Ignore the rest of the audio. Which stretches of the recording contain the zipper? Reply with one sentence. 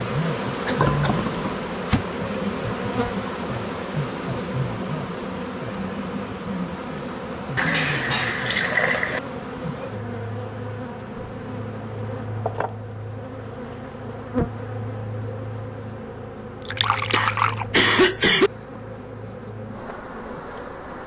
You can't hear the zipper here.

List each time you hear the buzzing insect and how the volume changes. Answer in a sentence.
The buzzing insect can be heard from 0.0 to 21.0 s, getting quieter.